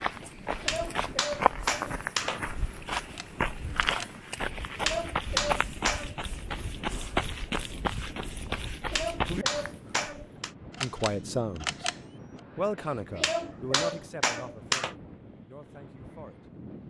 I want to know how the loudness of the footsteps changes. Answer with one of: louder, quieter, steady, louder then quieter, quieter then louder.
steady.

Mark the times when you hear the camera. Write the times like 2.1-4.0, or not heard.
3.0-4.1, 10.7-12.4.